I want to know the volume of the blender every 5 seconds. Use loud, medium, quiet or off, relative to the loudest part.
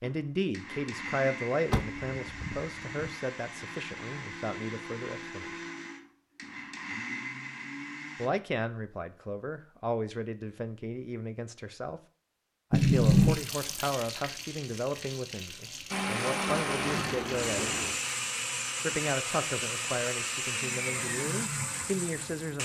medium, medium, off, loud, loud.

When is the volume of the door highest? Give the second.
13 s.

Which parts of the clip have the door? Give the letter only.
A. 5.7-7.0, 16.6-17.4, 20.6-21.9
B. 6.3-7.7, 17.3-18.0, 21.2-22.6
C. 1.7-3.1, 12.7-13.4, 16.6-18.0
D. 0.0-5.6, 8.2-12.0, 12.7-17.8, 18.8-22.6
C.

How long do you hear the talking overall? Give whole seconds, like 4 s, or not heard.
18 s.